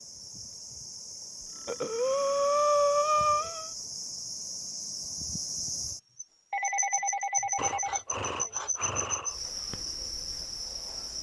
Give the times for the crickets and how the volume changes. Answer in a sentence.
The crickets can be heard from 0.0 to 11.1 s, getting louder.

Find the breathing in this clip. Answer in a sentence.
The breathing can be heard from 1.6 to 3.7 s and from 7.5 to 9.3 s.